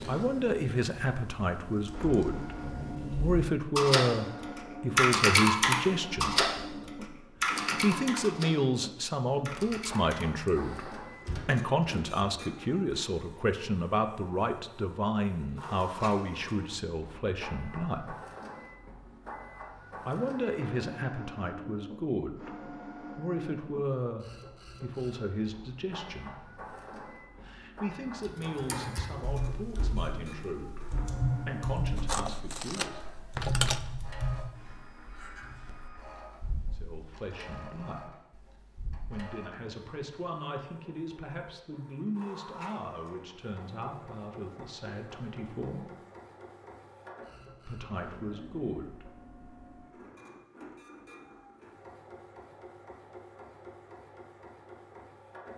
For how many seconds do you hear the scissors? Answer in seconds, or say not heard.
2 s.